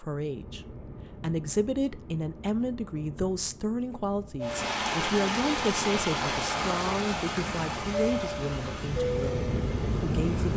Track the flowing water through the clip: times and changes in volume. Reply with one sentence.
The flowing water can be heard from 4.4 to 10.5 s, getting quieter.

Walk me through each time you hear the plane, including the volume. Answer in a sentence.
You can hear the plane from 0.0 to 10.5 s, getting louder.